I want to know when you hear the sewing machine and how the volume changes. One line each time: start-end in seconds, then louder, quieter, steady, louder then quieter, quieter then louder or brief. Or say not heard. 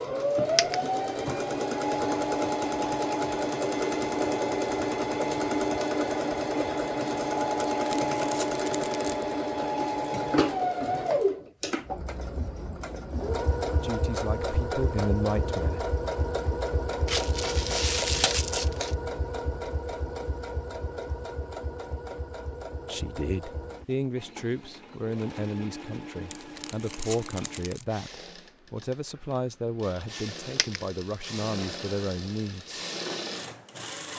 0.0-34.1 quieter.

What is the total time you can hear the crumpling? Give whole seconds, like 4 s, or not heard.
5 s.